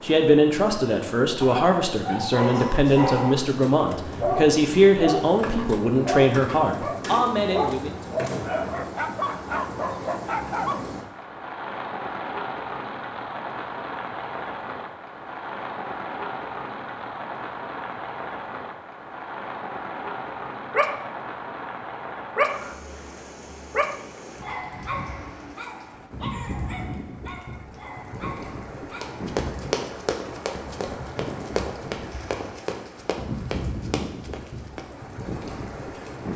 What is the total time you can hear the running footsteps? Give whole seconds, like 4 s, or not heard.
6 s.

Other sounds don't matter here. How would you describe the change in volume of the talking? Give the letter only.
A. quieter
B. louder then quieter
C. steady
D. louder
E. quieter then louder
C.